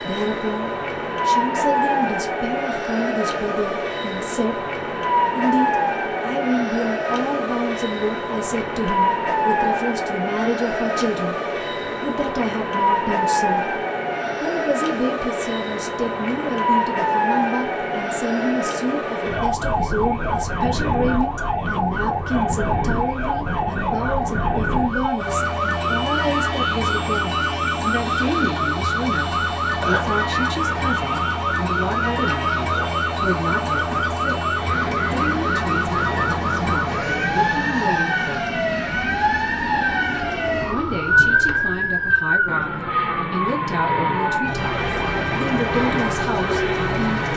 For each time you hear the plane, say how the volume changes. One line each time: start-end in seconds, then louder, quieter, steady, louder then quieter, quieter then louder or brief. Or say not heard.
0.0-47.3 steady.